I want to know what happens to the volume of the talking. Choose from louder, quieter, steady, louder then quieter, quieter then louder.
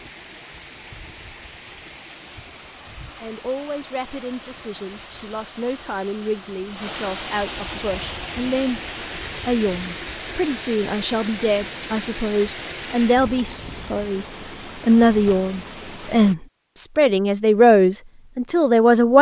louder.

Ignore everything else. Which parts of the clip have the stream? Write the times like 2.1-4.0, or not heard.
0.0-16.4.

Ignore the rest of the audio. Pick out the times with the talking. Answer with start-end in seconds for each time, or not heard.
3.1-8.8, 9.4-14.2, 14.8-19.1.